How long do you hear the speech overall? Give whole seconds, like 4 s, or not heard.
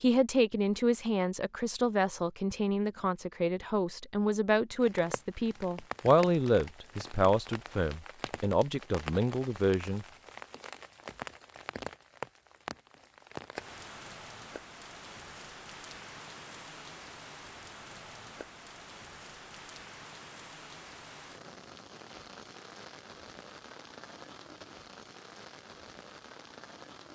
10 s.